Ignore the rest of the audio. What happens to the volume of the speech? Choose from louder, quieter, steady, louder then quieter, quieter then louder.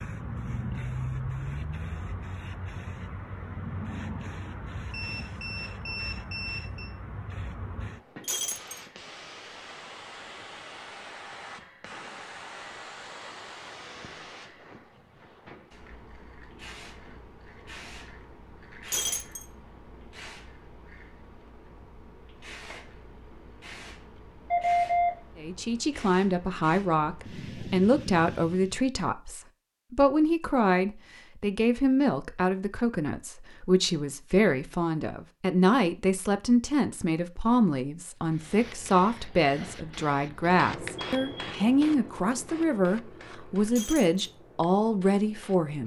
steady.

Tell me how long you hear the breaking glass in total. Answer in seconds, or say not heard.
2 s.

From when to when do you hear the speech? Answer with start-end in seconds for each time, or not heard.
25.4-45.8.